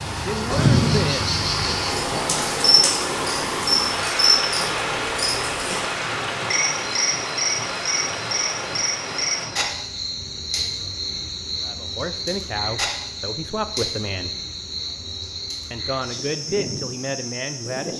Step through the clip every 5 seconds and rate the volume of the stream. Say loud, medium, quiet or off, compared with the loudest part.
loud, loud, off, off.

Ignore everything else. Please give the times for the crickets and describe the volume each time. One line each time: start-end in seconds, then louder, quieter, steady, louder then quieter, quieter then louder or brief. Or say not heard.
0.0-17.9 quieter.